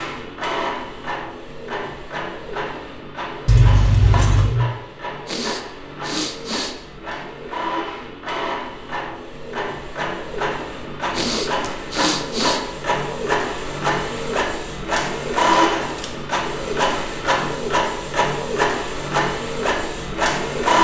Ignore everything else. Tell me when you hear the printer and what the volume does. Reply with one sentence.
You can hear the printer from 0.0 to 20.8 s, getting louder.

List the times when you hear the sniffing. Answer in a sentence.
The sniffing can be heard from 5.2 to 6.8 s and from 11.1 to 12.6 s.